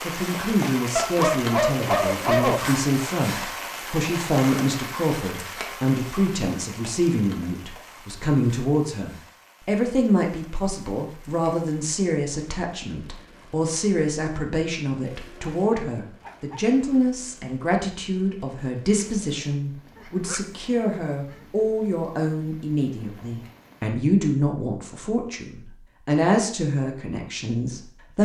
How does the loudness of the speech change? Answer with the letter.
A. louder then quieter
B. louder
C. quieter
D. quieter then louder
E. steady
E.